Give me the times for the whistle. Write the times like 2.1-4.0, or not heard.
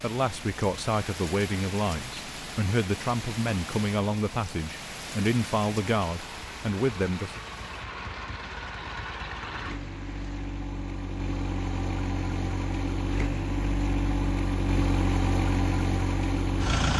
not heard.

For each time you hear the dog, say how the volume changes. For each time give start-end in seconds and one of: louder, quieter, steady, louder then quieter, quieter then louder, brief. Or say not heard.
not heard.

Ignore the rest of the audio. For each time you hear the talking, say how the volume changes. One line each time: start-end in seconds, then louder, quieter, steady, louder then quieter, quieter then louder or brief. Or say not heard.
0.0-7.4 steady.